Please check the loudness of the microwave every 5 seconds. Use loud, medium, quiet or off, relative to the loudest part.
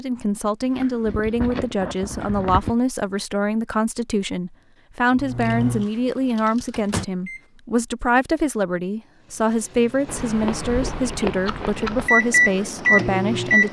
off, medium, loud.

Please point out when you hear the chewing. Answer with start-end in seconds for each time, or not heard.
0.6-2.8, 5.4-6.8, 10.1-12.1.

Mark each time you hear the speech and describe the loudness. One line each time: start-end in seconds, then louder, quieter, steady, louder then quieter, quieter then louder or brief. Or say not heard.
0.0-13.6 steady.